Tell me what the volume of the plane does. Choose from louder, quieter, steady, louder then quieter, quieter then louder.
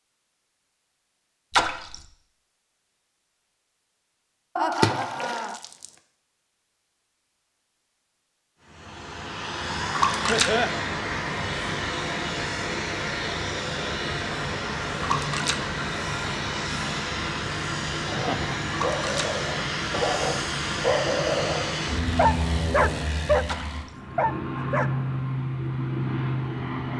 steady.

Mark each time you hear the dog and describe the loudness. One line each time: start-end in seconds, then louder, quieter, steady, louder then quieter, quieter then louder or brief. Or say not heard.
18.1-23.4 louder
24.1-24.9 brief.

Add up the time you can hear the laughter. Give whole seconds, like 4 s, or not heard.
2 s.